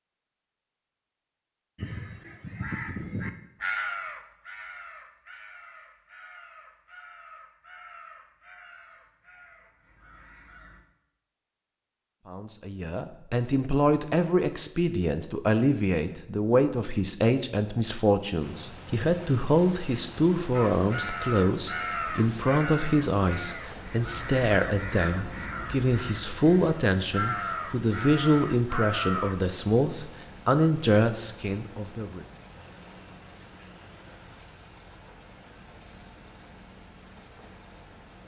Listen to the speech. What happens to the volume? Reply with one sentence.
The loudness of the speech stays about the same.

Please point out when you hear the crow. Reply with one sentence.
The crow can be heard from 1.8 to 10.8 s and from 20.5 to 29.5 s.